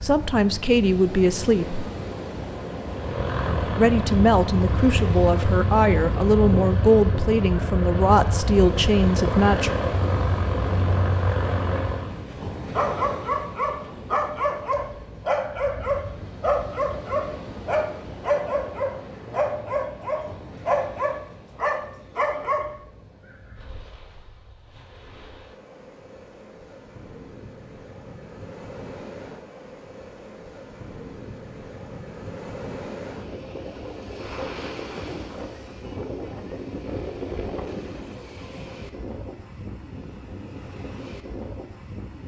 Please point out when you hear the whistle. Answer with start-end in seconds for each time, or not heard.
not heard.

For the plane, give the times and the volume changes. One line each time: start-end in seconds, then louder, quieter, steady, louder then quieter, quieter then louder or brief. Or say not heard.
2.9-12.2 steady.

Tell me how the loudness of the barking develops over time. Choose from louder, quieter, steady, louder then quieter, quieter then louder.
steady.